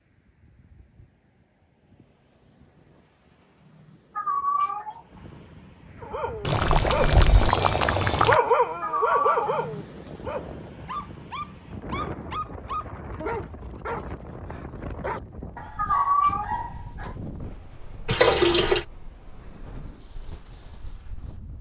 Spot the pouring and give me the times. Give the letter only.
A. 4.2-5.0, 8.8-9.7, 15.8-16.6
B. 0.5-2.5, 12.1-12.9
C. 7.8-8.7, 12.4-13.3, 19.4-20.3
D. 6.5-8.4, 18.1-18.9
D.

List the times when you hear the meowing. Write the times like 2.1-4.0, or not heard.
4.2-5.0, 8.8-9.7, 15.8-16.6.